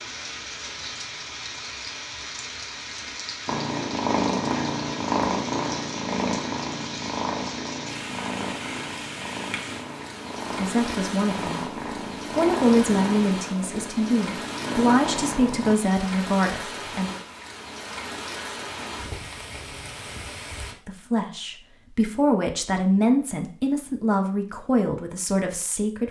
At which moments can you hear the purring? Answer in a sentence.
You can hear the purring from 3.5 to 15.8 s.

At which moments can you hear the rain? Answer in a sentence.
You can hear the rain from 0.0 to 20.8 s.